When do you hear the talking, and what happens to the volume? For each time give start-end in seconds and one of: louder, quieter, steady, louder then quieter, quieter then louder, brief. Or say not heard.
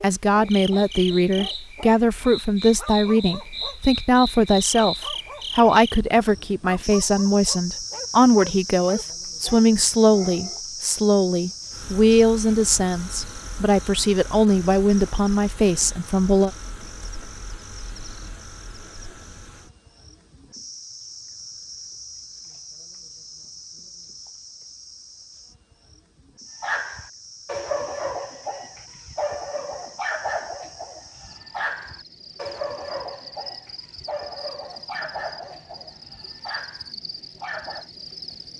0.0-16.5 steady.